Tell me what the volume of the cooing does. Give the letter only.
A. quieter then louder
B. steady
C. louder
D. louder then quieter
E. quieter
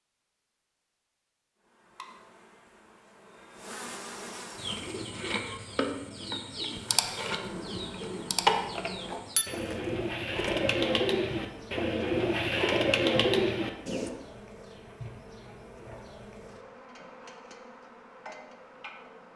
C.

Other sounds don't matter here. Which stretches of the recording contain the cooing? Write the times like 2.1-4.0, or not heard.
4.5-14.1.